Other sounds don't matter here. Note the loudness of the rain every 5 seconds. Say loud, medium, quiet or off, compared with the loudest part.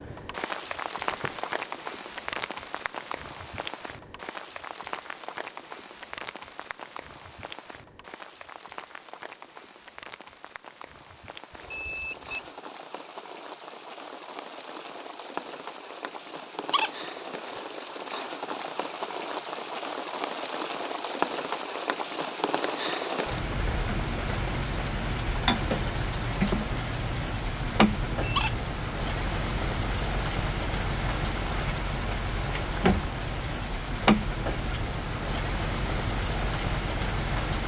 medium, quiet, quiet, medium, loud, loud, loud, loud.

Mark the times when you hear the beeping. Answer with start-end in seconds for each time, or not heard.
11.5-12.5, 26.9-28.6.